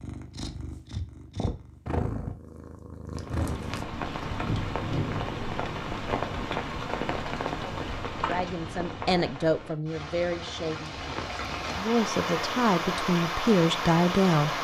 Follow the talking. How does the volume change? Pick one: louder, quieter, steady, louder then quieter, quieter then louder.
quieter then louder.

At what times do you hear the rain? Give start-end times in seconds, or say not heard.
3.1-14.5.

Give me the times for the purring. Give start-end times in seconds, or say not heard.
0.0-3.9.